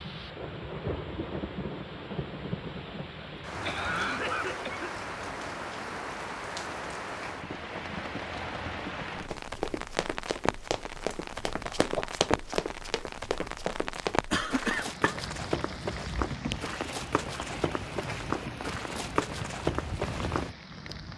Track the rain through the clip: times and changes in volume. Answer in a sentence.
The rain can be heard from 0.0 to 21.1 s, at a steady volume.